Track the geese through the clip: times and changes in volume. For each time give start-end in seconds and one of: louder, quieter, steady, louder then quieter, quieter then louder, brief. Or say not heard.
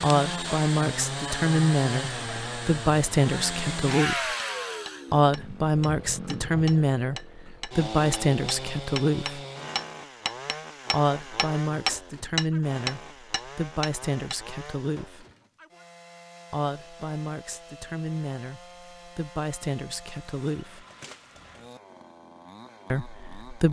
not heard.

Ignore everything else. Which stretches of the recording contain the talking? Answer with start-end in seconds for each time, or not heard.
0.0-4.3, 5.1-9.4, 10.9-15.2, 16.5-20.9, 22.9-23.6.